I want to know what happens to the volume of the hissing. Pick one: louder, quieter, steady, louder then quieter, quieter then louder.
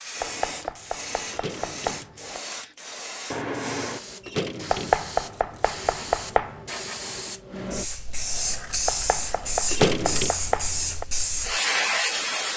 louder.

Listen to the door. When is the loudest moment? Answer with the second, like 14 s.
10 s.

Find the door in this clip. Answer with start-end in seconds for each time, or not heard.
1.3-2.1, 4.2-5.0, 9.7-10.3.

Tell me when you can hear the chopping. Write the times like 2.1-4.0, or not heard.
0.2-2.4, 4.7-6.7, 8.8-11.1.